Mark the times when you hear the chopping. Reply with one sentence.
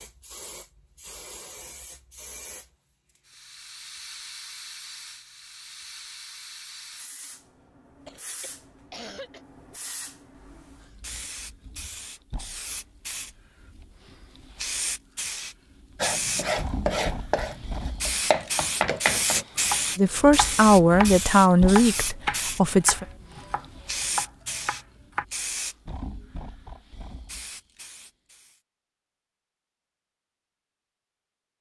The chopping can be heard from 16.0 to 25.2 s.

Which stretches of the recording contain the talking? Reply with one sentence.
The talking can be heard from 19.9 to 23.1 s.